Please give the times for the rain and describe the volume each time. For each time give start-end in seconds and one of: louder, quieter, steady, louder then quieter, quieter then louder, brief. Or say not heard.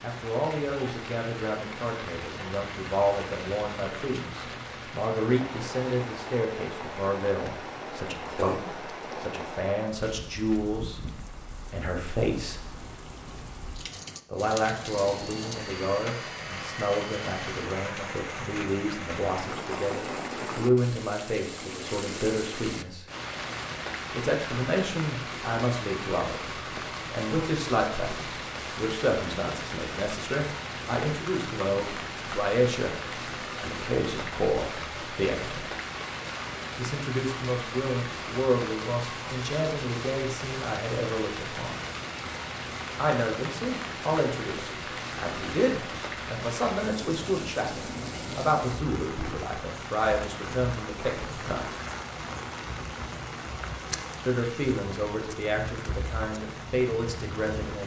0.0-57.8 steady.